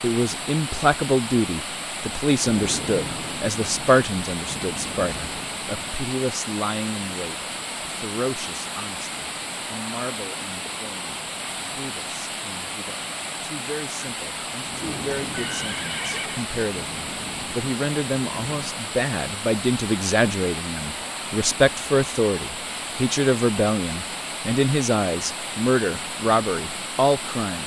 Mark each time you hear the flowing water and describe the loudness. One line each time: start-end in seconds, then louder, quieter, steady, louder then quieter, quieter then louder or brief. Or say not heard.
0.0-27.6 steady.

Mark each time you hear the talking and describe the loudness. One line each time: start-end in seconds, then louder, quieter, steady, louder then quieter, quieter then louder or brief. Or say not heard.
0.0-27.6 quieter then louder.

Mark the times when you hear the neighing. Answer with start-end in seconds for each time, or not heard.
15.2-16.5.